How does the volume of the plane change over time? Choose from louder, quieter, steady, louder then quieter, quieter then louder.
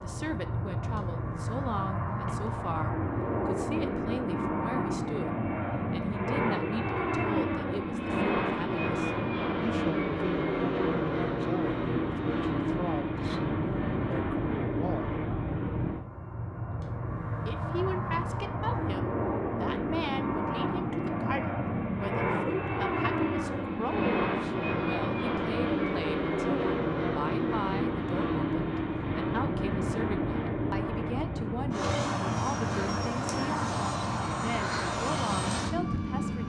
steady.